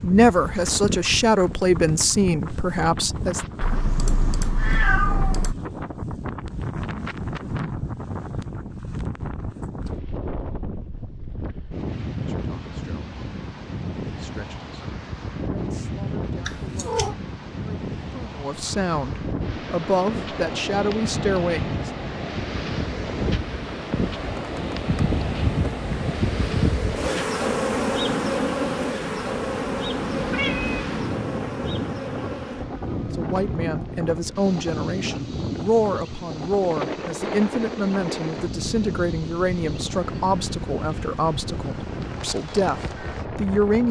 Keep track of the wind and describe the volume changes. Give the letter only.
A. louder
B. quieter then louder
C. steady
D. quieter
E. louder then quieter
C.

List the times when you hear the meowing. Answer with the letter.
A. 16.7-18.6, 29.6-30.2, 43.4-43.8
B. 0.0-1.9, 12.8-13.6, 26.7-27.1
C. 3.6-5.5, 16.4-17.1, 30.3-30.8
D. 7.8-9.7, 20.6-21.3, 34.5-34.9
C.